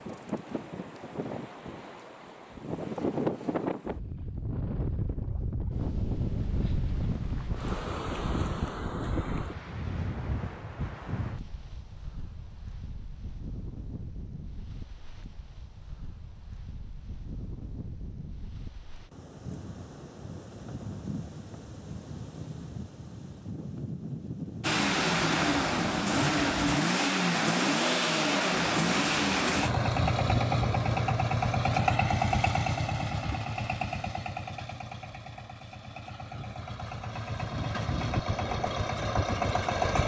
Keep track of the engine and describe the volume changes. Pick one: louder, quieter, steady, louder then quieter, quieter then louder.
quieter then louder.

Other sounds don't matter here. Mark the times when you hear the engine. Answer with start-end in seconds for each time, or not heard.
24.6-40.0.